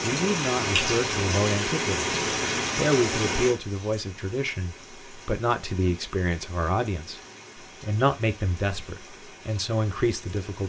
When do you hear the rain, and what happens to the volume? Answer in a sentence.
The rain can be heard from 0.0 to 10.6 s, getting quieter.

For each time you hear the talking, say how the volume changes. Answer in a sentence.
You can hear the talking briefly from 0.0 to 2.1 s; and from 2.8 to 10.6 s, at a steady volume.